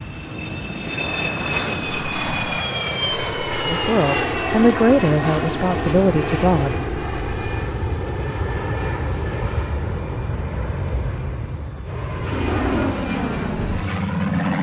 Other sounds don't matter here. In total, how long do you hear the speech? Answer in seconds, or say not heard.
3 s.